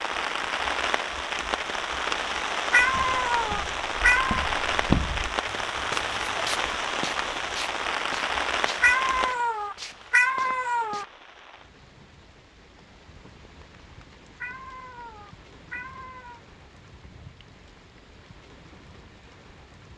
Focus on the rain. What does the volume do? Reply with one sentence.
The loudness of the rain goes down.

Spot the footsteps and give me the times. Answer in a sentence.
The footsteps can be heard from 2.9 to 11.1 s.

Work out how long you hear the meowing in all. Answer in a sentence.
You can hear the meowing for 6 seconds altogether.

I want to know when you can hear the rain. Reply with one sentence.
You can hear the rain from 0.0 to 19.9 s.